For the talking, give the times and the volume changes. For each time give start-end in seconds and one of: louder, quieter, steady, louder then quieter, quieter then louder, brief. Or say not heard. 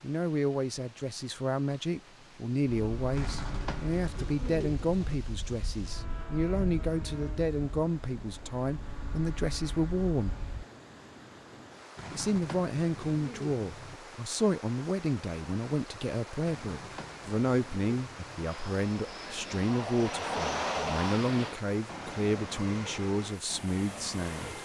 0.0-10.4 steady
12.1-24.5 steady.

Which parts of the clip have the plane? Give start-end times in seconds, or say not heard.
2.6-10.7, 18.4-24.5.